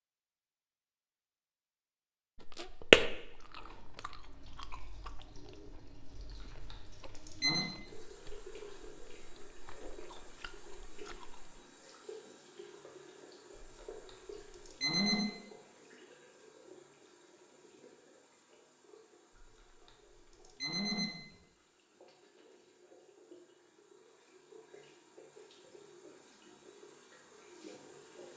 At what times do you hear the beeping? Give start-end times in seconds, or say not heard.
6.2-7.7, 13.6-15.2, 19.4-21.4.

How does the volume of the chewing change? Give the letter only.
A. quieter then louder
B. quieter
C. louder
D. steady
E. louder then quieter
A.